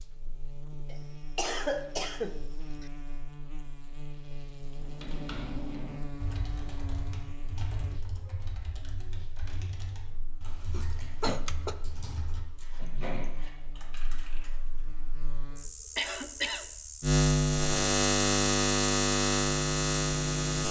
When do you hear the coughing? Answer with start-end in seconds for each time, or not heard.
0.9-2.9, 10.7-11.8, 15.9-16.6.